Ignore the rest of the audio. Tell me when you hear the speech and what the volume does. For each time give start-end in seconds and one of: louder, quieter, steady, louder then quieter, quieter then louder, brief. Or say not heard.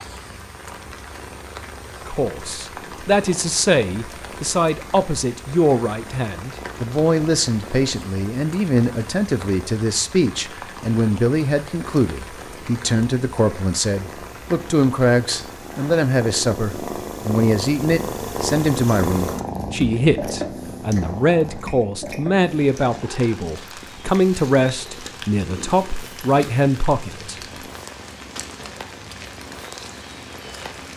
2.0-27.4 steady.